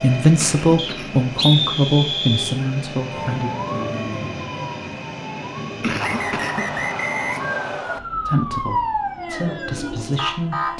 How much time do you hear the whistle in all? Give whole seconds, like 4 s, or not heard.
4 s.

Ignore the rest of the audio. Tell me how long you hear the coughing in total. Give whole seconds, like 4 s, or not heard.
2 s.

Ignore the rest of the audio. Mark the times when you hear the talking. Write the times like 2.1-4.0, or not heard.
0.0-3.5, 8.2-10.7.